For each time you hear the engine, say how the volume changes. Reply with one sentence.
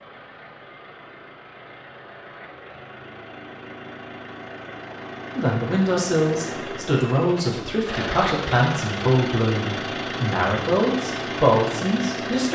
You can hear the engine from 0.0 to 12.4 s, getting louder.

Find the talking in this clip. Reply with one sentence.
The talking can be heard from 5.3 to 12.4 s.